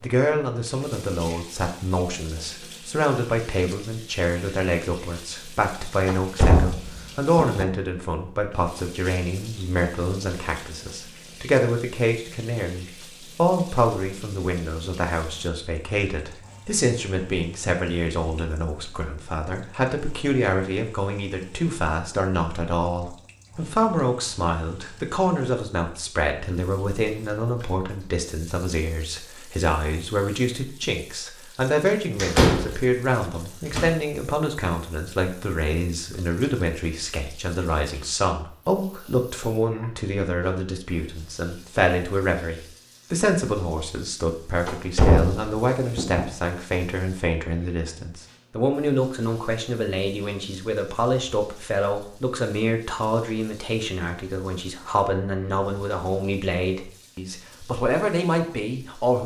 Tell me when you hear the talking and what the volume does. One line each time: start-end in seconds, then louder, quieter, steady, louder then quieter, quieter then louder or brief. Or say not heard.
0.0-59.2 steady.